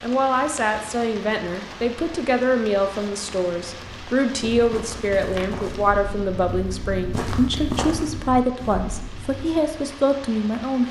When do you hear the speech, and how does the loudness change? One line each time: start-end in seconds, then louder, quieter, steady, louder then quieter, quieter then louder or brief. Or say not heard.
0.0-10.8 steady.